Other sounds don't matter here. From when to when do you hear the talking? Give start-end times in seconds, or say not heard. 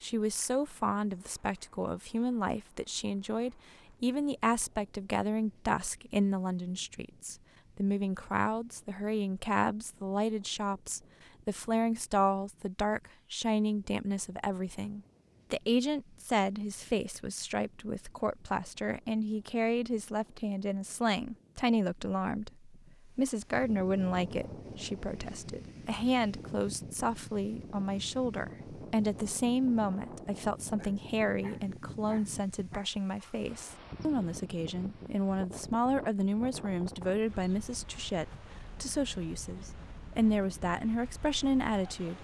0.0-42.2.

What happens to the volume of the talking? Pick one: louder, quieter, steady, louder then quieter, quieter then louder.
steady.